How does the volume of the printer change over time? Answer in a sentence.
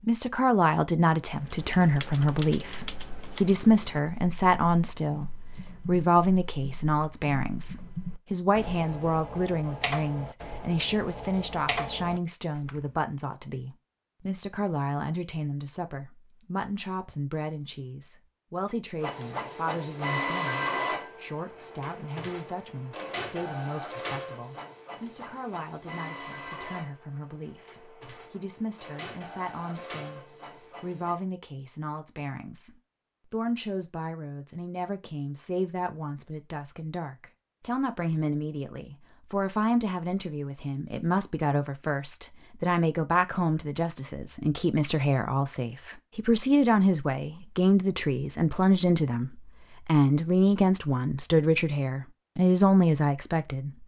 The loudness of the printer goes down.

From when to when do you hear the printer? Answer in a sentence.
You can hear the printer from 19.0 to 31.2 s.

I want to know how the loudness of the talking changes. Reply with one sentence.
The loudness of the talking goes down, then up.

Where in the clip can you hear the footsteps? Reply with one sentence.
You can't hear the footsteps here.